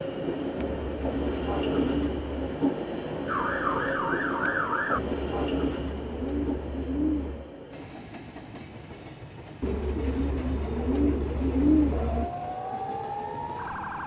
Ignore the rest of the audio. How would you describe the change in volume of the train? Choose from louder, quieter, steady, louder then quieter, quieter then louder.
quieter.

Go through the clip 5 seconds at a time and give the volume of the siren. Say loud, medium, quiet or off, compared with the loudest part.
loud, off, medium.